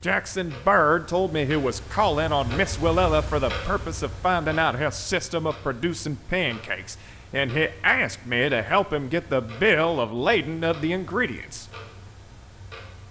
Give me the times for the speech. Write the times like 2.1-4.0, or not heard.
0.0-11.7.